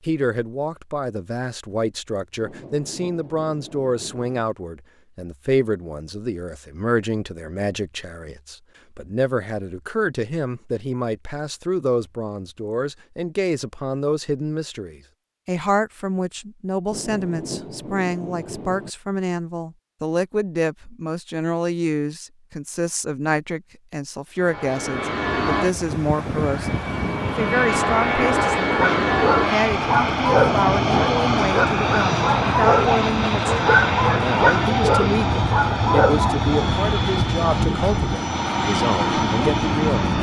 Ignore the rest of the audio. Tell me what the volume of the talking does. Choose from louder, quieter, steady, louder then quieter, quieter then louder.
steady.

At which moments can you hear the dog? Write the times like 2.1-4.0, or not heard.
28.6-36.5.